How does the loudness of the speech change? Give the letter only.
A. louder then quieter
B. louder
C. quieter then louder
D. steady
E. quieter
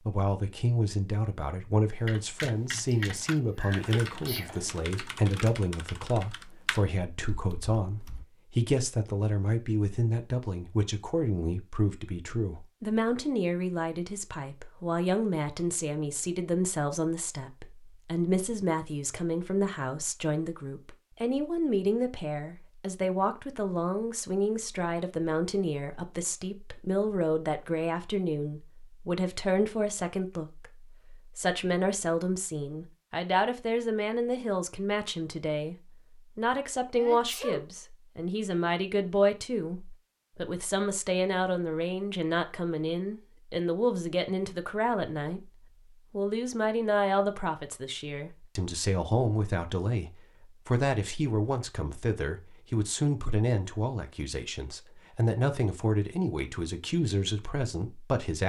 D.